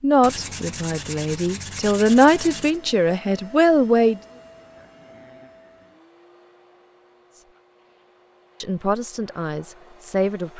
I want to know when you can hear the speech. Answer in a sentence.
You can hear the speech from 0.0 to 4.2 s and from 8.6 to 10.5 s.